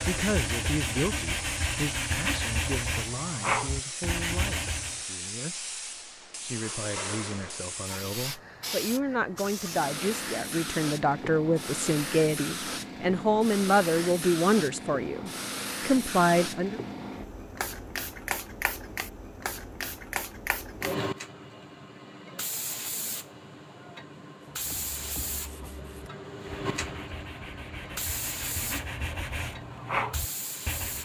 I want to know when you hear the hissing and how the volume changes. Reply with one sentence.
You can hear the hissing from 0.0 to 31.0 s, at a steady volume.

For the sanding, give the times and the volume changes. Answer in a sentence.
You can hear the sanding from 0.0 to 5.0 s, at a steady volume; and from 24.5 to 31.0 s, getting louder.